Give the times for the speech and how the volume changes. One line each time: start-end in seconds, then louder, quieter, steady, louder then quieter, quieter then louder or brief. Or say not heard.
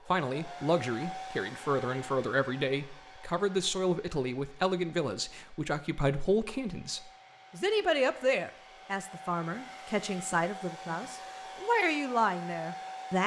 0.1-13.2 steady.